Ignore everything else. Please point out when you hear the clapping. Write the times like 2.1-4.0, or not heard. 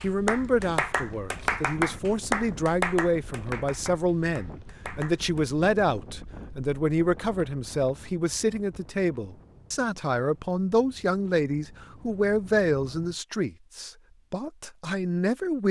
0.0-5.4.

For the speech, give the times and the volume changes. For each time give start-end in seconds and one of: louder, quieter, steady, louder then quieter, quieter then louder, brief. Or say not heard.
0.0-15.6 steady.